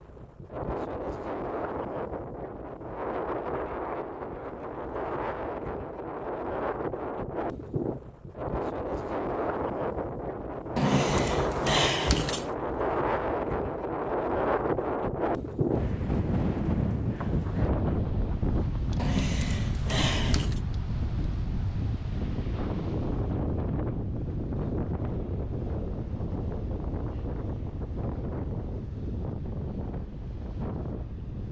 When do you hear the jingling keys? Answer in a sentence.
You can hear the jingling keys from 10.8 to 12.5 s and from 18.9 to 20.6 s.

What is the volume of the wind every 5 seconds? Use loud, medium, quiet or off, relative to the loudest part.
medium, loud, loud, loud, loud, medium, medium.